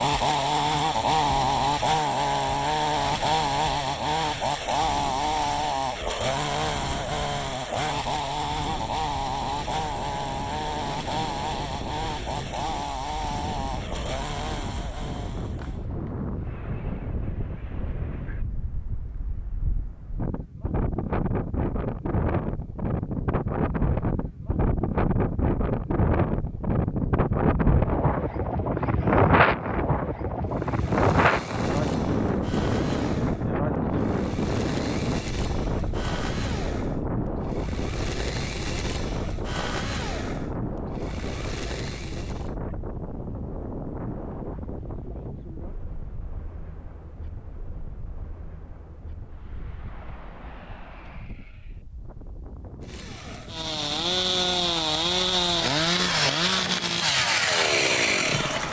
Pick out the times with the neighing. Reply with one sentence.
You can hear the neighing from 50.5 to 51.9 s.